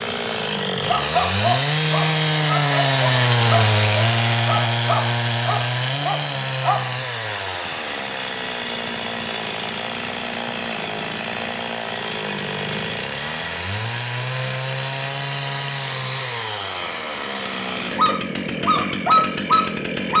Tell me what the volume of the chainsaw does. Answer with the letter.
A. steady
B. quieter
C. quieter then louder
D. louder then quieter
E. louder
B.